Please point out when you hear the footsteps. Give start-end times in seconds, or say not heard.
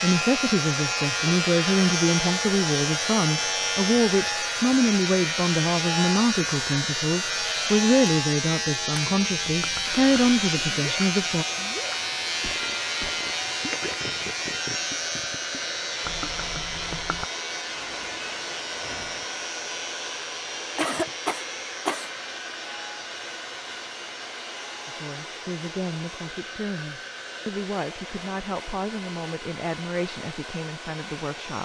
not heard.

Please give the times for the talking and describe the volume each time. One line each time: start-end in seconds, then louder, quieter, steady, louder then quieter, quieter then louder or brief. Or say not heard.
0.0-11.4 steady
24.9-31.5 steady.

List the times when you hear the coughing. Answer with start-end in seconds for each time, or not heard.
20.8-22.1.